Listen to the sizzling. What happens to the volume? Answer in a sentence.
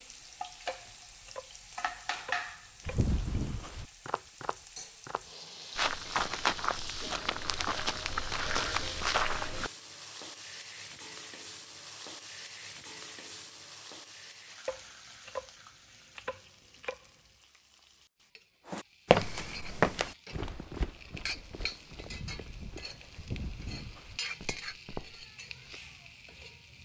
The volume of the sizzling goes down, then up.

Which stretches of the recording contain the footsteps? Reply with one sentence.
You can hear the footsteps from 2.9 to 9.7 s and from 18.7 to 25.8 s.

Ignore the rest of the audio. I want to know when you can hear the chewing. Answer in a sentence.
The chewing can't be heard in this clip.